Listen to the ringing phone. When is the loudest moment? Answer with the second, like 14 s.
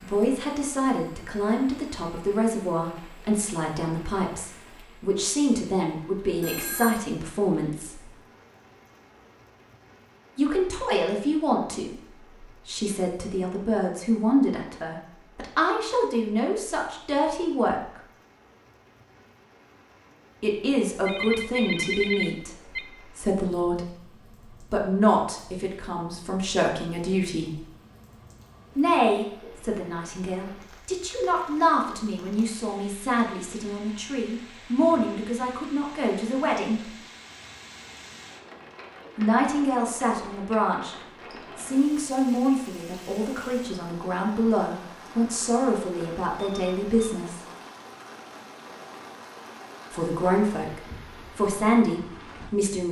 22 s.